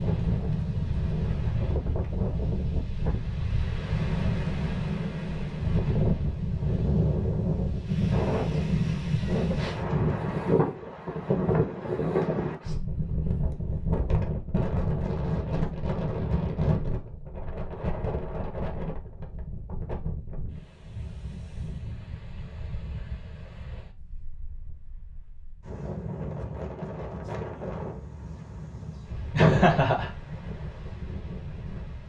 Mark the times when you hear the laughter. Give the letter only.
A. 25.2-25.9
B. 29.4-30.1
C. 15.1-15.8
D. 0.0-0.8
B.